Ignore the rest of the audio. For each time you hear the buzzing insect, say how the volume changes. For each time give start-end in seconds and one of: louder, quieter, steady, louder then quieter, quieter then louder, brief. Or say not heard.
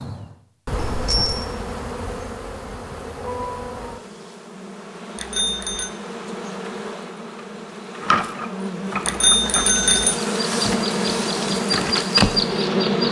0.0-13.0 louder.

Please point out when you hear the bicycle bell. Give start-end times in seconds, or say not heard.
0.8-1.5, 5.2-5.9, 9.1-10.2.